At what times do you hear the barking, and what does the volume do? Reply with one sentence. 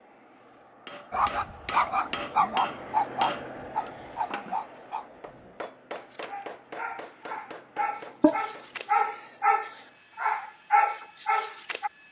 You can hear the barking from 1.1 to 11.9 s, getting quieter then louder.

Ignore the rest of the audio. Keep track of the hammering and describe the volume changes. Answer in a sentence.
The loudness of the hammering goes down.